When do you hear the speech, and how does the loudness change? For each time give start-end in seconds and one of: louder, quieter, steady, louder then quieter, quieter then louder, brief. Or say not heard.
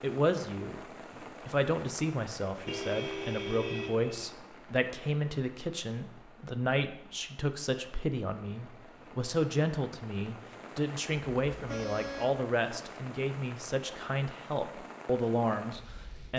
0.0-0.8 brief
1.4-16.3 steady.